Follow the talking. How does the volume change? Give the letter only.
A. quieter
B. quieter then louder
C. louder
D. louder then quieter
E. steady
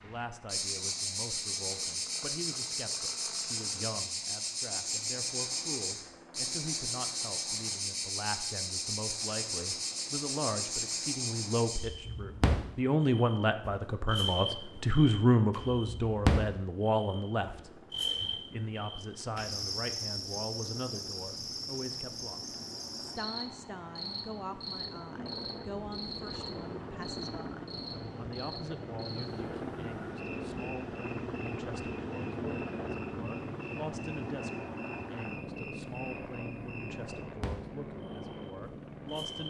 D.